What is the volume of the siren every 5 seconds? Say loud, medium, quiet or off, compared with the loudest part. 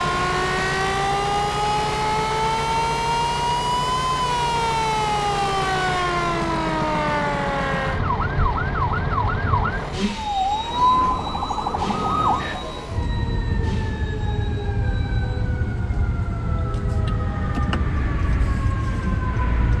loud, loud, loud, medium.